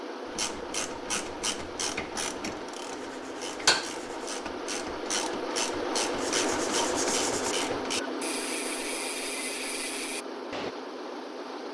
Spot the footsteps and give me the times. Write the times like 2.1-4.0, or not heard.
not heard.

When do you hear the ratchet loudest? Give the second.
4 s.